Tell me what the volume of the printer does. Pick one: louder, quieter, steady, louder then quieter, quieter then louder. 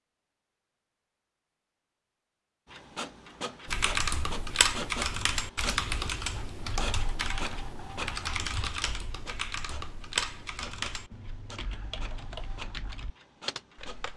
quieter.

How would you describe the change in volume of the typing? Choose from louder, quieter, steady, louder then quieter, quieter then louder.
quieter.